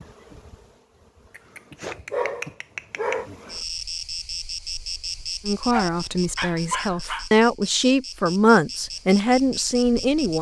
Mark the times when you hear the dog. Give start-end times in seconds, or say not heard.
1.4-3.2, 5.7-7.2.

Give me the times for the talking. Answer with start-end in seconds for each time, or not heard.
5.4-10.3.